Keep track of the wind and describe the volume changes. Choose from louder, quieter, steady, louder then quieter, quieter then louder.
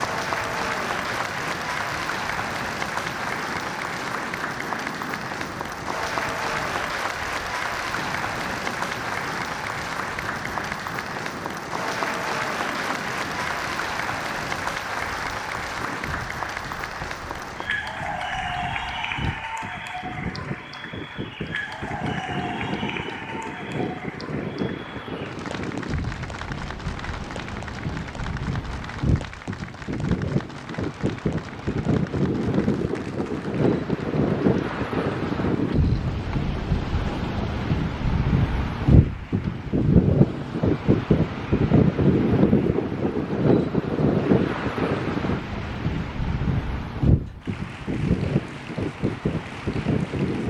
louder.